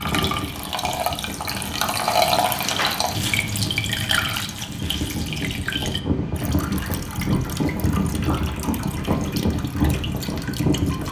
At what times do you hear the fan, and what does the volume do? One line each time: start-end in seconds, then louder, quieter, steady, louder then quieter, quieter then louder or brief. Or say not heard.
0.0-11.0 louder.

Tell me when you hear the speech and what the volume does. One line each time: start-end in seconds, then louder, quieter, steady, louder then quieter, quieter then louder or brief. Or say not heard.
not heard.